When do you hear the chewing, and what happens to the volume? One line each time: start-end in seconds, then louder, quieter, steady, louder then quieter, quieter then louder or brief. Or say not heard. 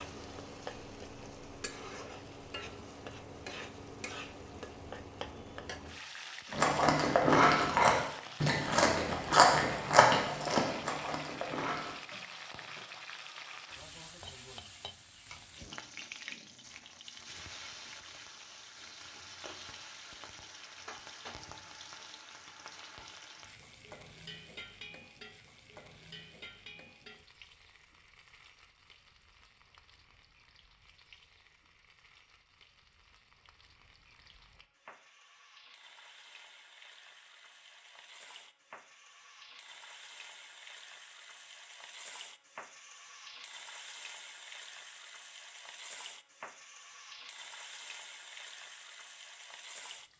6.5-12.0 quieter.